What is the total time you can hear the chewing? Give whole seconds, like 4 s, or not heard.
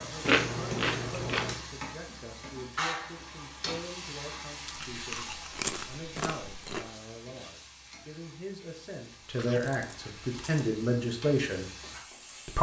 5 s.